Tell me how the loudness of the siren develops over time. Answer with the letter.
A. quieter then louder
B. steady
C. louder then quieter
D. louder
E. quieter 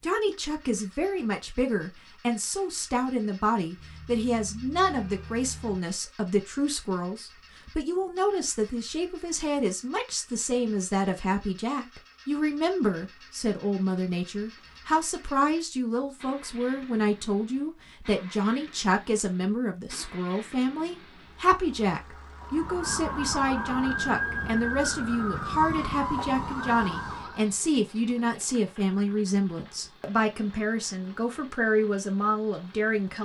B.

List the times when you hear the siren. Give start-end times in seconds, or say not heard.
22.4-27.5.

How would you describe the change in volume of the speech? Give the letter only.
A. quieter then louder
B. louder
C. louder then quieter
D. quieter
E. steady
E.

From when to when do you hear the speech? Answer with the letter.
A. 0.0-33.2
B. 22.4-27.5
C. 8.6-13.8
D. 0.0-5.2
A.